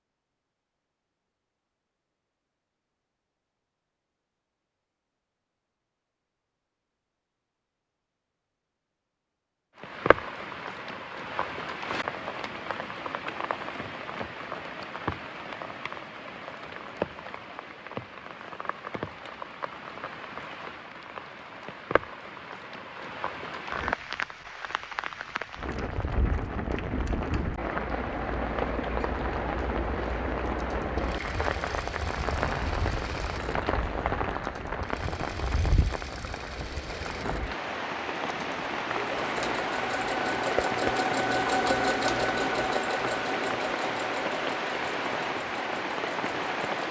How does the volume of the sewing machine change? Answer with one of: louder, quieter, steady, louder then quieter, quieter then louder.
louder then quieter.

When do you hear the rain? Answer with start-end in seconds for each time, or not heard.
9.8-46.8.